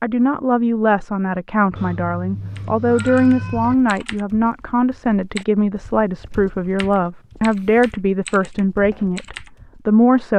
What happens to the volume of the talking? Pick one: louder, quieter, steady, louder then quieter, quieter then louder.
steady.